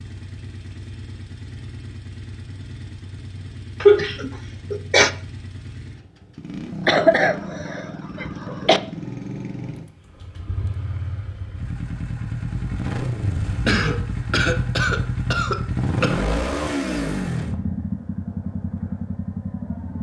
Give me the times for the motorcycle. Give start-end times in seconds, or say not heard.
0.0-19.9.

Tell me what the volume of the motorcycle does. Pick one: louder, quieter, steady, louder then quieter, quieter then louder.
louder.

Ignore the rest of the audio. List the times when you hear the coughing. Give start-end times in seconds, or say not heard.
3.8-5.1, 6.8-8.8, 13.7-16.4.